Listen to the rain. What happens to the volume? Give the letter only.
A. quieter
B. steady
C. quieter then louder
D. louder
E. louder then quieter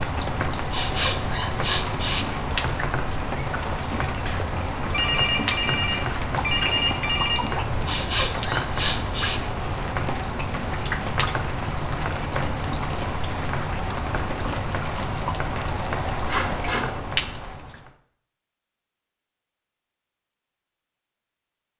B.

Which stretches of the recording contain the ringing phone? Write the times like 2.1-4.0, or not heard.
4.9-7.4.